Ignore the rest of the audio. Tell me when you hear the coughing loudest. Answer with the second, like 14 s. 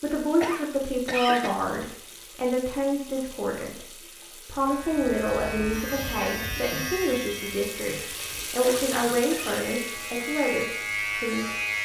1 s.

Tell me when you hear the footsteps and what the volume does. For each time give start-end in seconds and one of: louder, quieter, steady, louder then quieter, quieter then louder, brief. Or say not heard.
not heard.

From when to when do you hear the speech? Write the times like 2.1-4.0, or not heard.
0.0-11.6.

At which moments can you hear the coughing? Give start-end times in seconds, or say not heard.
0.4-1.6, 8.6-9.7.